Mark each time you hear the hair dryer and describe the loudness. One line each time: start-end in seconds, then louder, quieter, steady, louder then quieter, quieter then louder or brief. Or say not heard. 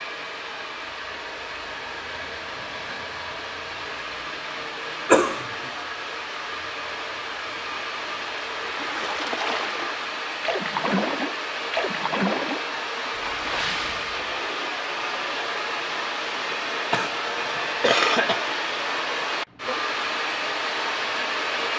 0.0-21.7 louder.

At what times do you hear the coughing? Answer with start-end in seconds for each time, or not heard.
5.0-5.5, 16.9-18.4.